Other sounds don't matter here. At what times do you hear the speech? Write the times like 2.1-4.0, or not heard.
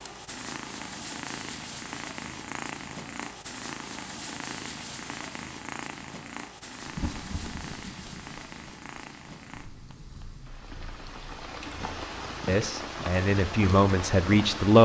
12.4-14.7.